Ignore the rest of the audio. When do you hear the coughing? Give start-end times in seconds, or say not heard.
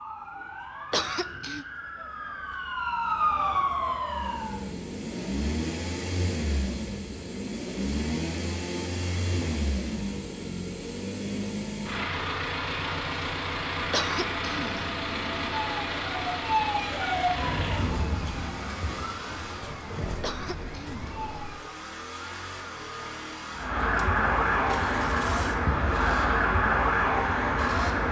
0.9-1.6, 13.9-14.9, 20.2-21.6.